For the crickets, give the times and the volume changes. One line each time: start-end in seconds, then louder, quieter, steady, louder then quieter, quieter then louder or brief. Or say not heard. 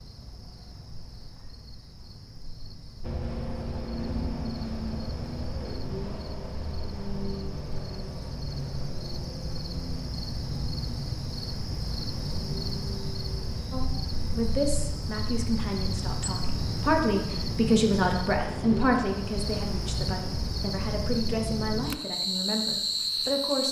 0.0-23.6 louder.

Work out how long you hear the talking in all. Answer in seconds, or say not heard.
10 s.